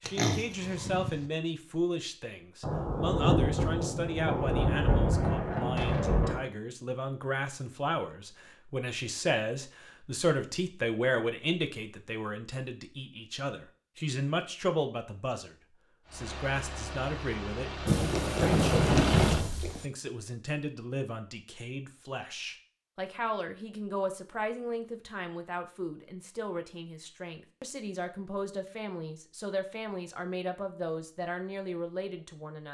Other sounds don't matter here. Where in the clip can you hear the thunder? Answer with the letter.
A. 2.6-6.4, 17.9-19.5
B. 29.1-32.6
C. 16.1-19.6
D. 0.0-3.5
A.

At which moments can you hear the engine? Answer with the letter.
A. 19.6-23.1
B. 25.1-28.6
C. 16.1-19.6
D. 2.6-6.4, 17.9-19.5
C.